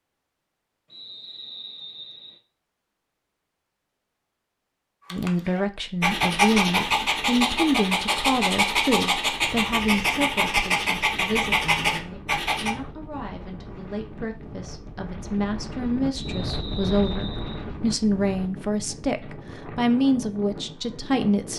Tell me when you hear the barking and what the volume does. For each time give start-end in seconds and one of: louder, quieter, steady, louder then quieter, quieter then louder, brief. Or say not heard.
5.1-12.8 steady.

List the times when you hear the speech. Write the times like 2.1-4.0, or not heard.
5.1-21.5.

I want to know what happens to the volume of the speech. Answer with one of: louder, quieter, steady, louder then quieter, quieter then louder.
quieter then louder.